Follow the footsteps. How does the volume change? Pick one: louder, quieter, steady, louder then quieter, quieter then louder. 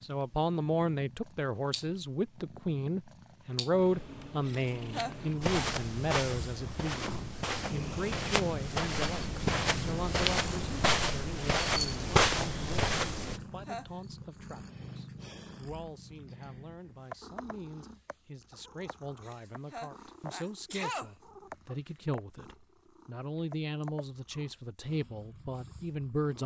louder.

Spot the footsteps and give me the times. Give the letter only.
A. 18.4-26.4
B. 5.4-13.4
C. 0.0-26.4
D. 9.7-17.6
B.